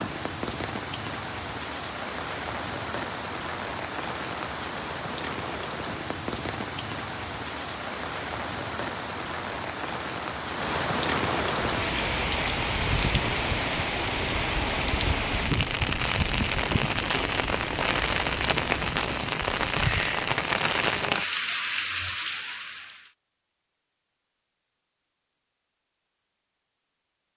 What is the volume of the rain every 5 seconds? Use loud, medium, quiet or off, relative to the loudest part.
medium, medium, loud, loud, loud, off.